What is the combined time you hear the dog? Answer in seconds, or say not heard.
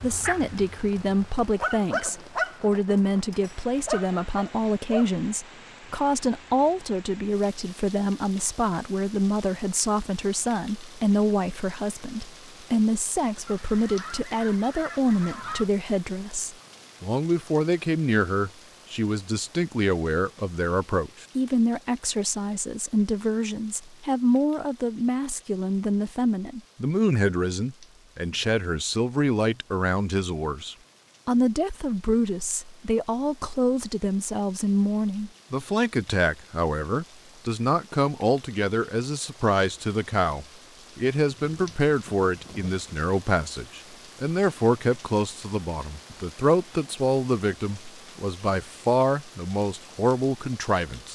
5 s.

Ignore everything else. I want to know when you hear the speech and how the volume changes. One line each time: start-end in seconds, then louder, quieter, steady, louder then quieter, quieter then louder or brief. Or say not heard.
0.0-51.1 steady.